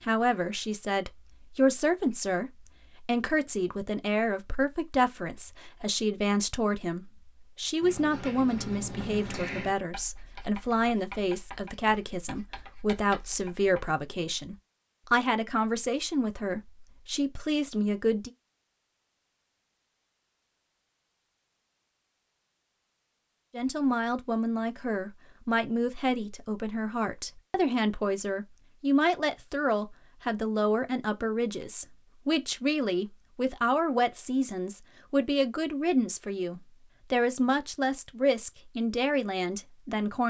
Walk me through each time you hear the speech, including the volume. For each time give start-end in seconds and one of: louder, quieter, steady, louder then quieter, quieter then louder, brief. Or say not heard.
0.0-18.3 steady
23.5-40.2 steady.